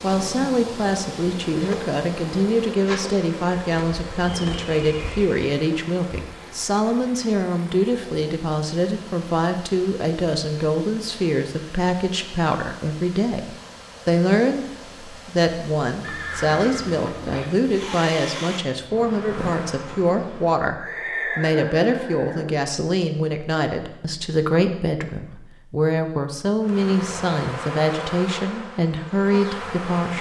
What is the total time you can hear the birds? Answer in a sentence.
The birds can't be heard in this clip.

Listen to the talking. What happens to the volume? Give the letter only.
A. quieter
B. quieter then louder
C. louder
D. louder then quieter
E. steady
E.